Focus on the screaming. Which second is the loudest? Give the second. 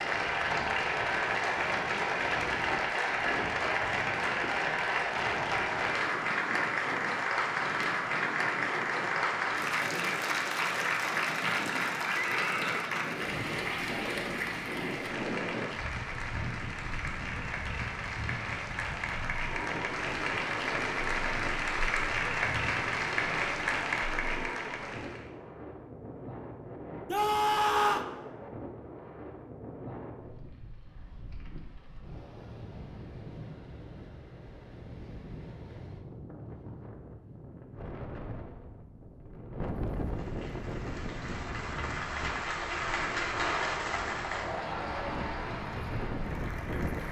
28 s.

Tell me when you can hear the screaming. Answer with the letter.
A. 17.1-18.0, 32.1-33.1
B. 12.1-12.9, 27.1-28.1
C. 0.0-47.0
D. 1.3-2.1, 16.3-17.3
B.